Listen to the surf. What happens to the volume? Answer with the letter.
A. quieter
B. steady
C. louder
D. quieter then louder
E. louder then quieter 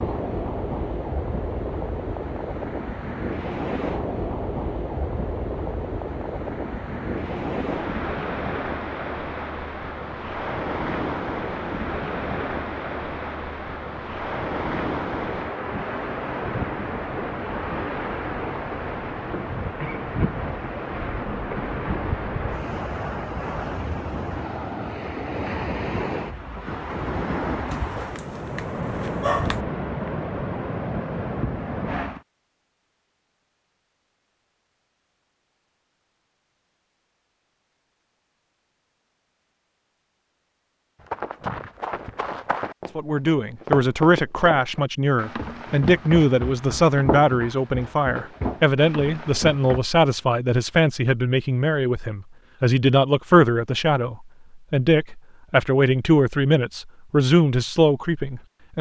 B.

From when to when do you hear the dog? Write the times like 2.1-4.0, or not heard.
27.7-29.6.